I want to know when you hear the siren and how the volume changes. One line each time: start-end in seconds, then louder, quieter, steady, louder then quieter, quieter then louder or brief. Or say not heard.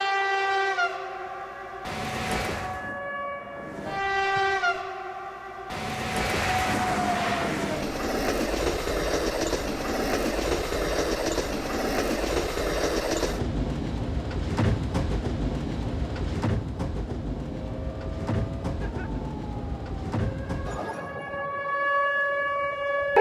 0.0-5.0 louder then quieter
17.5-23.1 louder.